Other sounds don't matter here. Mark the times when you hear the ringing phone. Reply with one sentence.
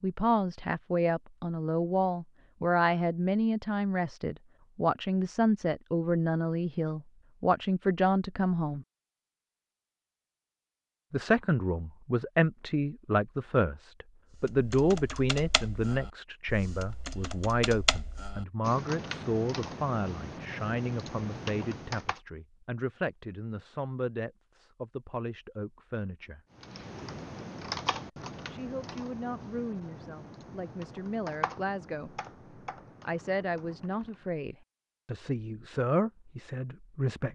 The ringing phone can't be heard in this clip.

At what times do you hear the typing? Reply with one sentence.
You can hear the typing from 14.4 to 22.2 s and from 26.6 to 34.3 s.